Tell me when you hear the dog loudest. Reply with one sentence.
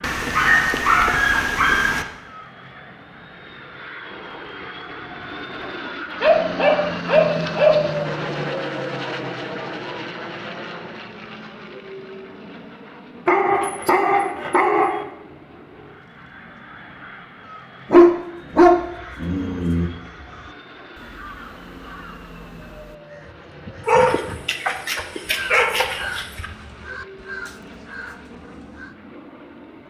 The loudest moment of the dog is at 18 seconds.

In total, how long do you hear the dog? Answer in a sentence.
You can hear the dog for 10 seconds altogether.